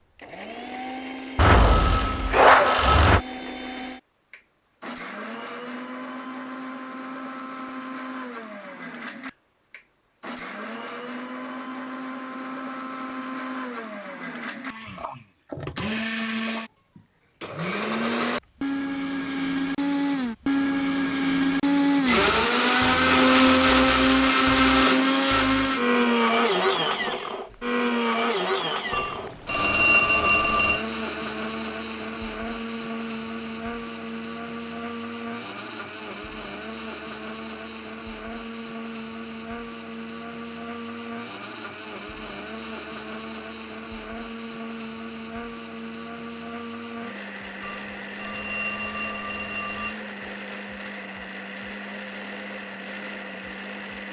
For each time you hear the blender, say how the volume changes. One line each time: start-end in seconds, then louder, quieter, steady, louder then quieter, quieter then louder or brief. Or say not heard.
0.0-54.0 louder then quieter.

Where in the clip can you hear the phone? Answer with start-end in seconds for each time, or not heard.
1.4-3.2, 28.9-30.9, 47.6-50.0.